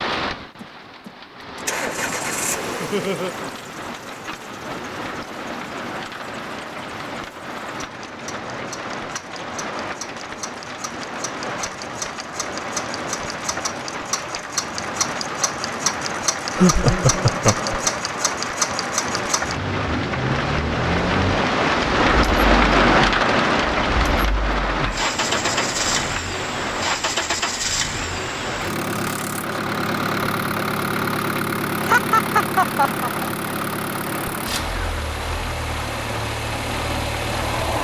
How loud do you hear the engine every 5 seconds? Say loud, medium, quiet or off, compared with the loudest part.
medium, quiet, medium, loud, loud, loud, loud, loud.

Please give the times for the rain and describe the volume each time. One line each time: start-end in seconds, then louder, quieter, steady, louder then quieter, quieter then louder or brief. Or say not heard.
0.0-37.8 louder then quieter.